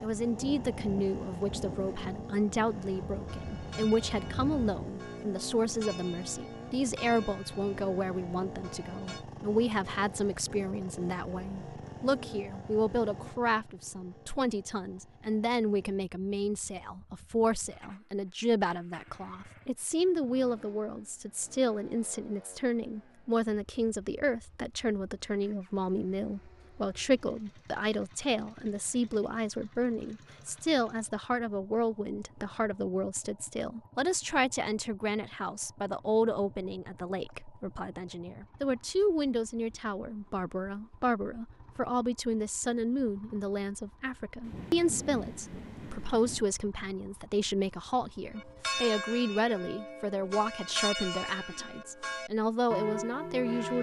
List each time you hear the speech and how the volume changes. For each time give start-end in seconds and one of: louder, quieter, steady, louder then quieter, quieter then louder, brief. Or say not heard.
0.0-53.7 steady.